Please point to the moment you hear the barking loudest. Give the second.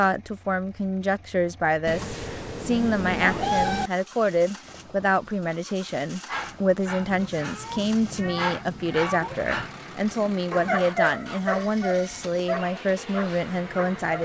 11 s.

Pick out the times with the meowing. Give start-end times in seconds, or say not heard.
1.9-3.9, 7.3-9.4.